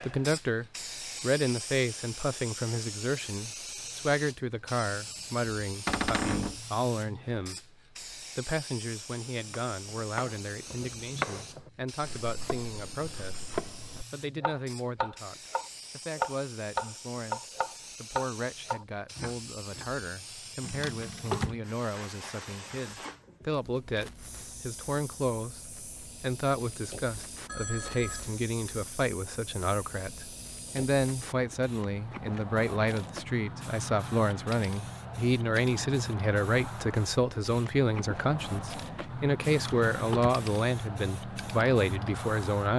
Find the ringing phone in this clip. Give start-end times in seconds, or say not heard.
27.4-28.4.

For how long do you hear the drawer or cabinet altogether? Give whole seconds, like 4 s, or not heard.
3 s.